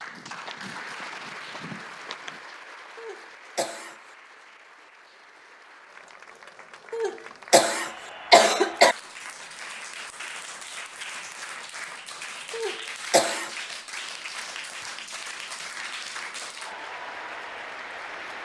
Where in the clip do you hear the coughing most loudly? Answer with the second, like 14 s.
8 s.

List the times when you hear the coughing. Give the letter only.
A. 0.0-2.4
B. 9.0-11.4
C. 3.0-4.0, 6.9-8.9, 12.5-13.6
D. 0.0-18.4
C.